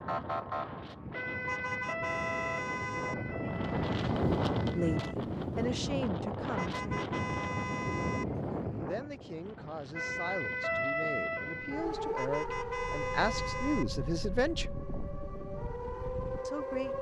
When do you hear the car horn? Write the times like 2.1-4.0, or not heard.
1.4-3.1, 6.5-8.2, 12.2-13.8.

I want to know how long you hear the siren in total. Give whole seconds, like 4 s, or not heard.
12 s.